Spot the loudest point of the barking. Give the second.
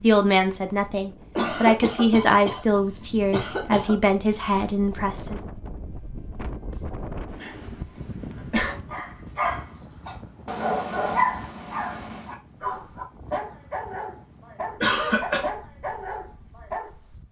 11 s.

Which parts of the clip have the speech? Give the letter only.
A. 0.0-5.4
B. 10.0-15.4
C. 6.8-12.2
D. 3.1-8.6
A.